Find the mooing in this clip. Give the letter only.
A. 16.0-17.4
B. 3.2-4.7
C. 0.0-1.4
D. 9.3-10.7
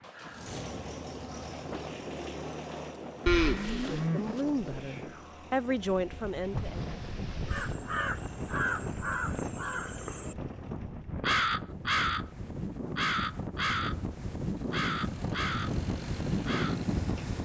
B.